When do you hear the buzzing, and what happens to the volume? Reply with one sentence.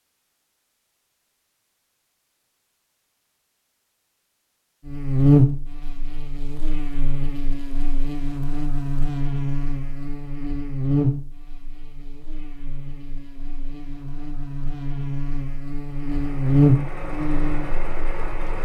You can hear the buzzing from 4.8 to 18.6 s, getting quieter then louder.